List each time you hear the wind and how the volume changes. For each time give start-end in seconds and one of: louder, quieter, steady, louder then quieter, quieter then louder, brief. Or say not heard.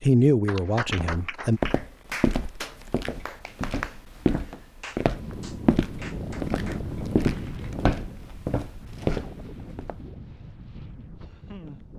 5.1-11.9 quieter.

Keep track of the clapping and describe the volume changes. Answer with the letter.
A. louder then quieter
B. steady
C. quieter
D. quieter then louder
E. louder
C.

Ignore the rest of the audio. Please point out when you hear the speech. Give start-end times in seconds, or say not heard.
0.0-1.6.